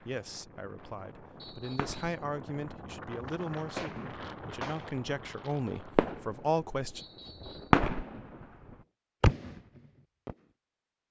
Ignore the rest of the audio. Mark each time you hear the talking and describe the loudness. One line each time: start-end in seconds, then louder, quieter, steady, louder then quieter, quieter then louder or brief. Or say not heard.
0.1-7.0 louder.